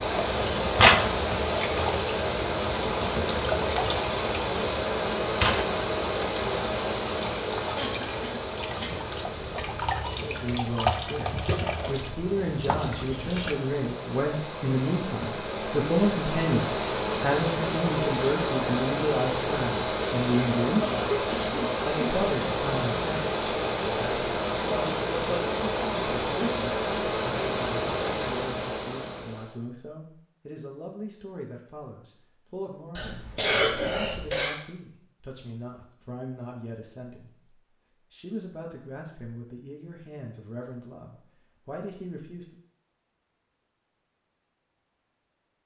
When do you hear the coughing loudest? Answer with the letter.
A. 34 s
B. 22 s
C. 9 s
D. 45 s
A.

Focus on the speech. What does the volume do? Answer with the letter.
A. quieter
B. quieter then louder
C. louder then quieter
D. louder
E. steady
A.